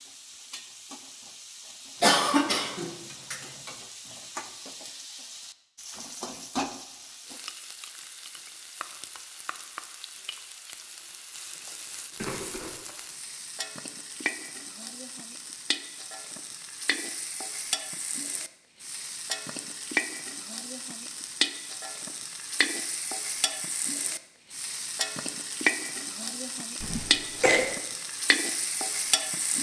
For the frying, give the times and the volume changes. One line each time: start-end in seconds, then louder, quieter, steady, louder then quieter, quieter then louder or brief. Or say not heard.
0.0-29.5 louder.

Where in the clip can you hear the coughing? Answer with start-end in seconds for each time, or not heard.
2.0-3.8, 12.2-12.8, 26.8-27.7.